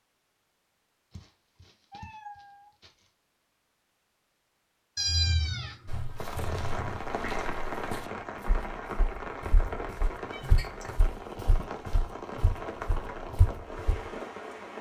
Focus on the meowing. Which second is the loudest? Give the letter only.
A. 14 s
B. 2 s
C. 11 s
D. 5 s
D.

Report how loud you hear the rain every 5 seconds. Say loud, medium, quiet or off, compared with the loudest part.
off, loud, loud.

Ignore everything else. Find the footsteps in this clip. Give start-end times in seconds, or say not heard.
5.8-14.1.